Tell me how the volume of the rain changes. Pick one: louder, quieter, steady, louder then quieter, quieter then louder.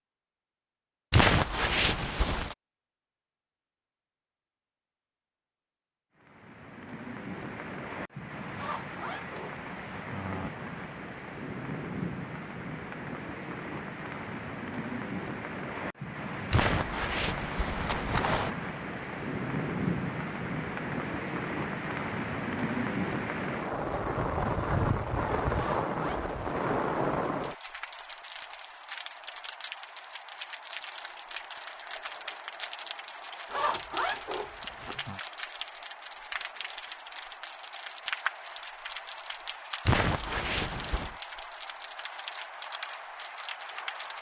louder then quieter.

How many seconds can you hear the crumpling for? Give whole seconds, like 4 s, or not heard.
5 s.